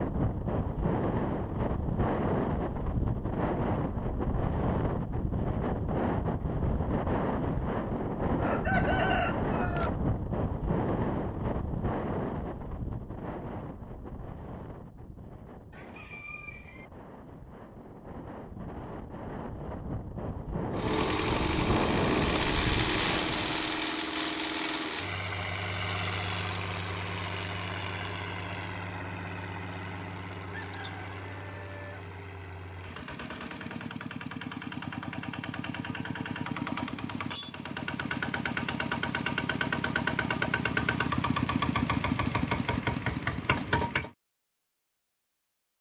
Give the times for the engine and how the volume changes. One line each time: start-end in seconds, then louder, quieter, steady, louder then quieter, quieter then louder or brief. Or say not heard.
20.7-44.1 quieter then louder.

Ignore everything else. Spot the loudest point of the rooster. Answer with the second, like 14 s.
9 s.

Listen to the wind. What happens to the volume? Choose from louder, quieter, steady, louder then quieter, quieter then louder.
quieter then louder.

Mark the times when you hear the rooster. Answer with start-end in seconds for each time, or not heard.
8.3-9.9, 15.7-16.9, 30.5-32.0.